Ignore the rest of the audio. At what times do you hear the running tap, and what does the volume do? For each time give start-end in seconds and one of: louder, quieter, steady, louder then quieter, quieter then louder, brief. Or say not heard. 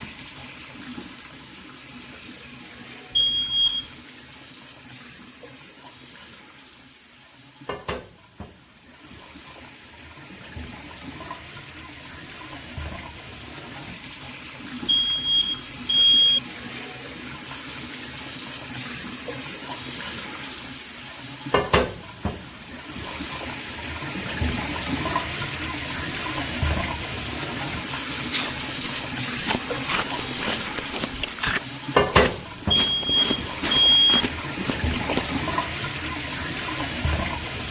0.0-37.6 louder.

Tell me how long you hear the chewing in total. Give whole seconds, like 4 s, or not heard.
7 s.